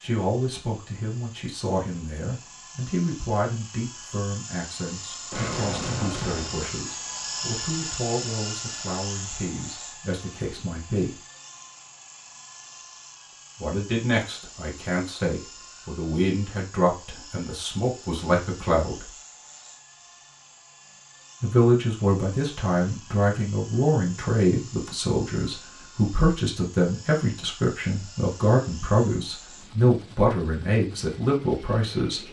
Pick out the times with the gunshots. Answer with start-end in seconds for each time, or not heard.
5.3-6.8.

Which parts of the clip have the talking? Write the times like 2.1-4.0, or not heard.
0.0-11.2, 13.6-19.1, 21.4-32.2.